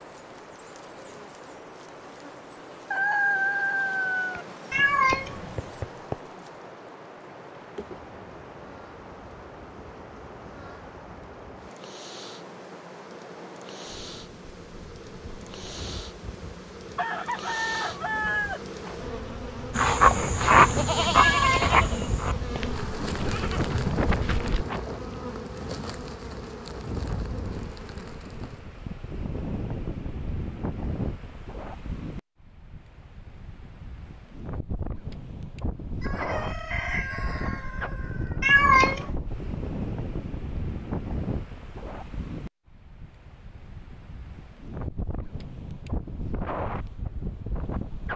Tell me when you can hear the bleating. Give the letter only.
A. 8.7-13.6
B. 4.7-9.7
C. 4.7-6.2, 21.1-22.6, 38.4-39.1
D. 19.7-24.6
D.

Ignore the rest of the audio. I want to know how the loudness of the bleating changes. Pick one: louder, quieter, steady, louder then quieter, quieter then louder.
quieter.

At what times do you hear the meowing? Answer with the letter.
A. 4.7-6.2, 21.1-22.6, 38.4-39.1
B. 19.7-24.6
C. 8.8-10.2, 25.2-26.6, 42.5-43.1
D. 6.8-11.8
A.